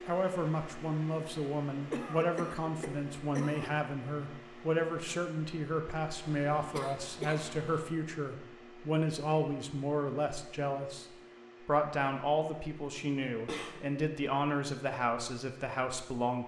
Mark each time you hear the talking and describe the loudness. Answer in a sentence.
The talking can be heard from 0.1 to 16.4 s, at a steady volume.